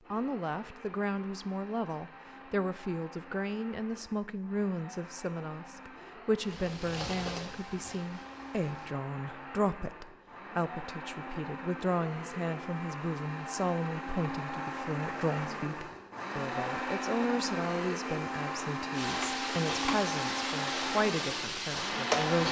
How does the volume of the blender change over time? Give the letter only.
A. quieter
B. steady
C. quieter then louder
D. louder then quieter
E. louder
E.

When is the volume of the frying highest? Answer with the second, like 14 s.
22 s.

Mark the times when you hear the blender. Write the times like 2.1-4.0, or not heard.
0.0-22.4.